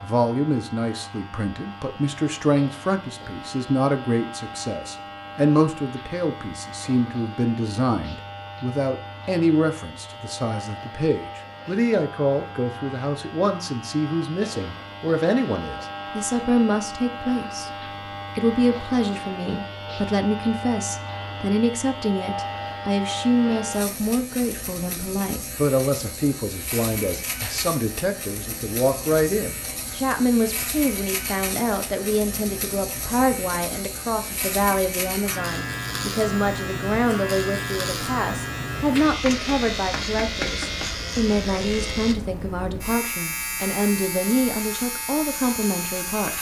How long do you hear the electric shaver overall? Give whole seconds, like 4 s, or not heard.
46 s.